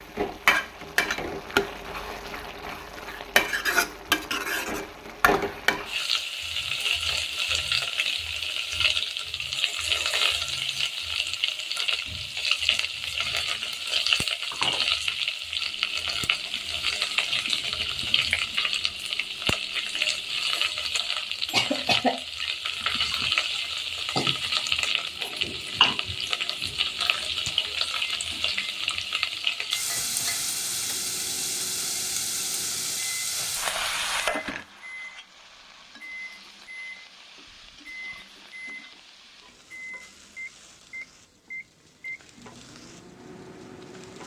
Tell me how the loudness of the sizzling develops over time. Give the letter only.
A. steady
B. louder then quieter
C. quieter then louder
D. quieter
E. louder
D.